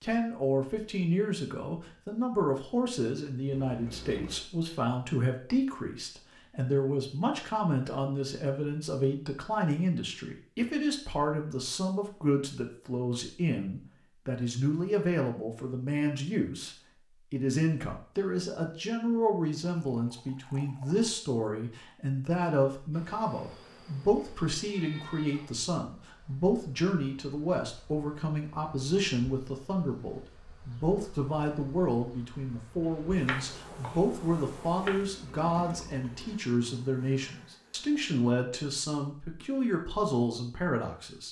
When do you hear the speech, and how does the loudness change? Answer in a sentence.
You can hear the speech from 0.0 to 41.2 s, at a steady volume.